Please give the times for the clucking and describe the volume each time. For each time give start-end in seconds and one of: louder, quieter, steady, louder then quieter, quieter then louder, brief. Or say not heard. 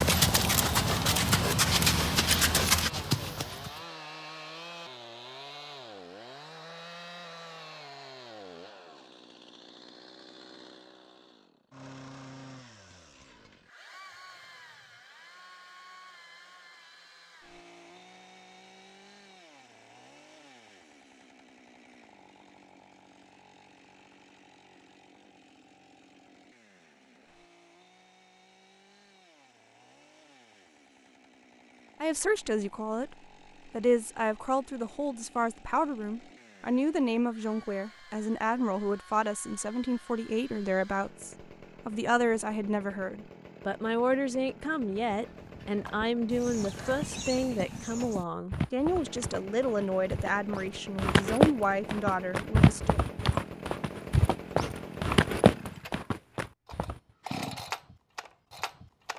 not heard.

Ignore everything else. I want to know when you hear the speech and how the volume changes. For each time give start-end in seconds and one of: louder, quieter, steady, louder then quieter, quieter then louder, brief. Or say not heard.
32.0-53.0 steady.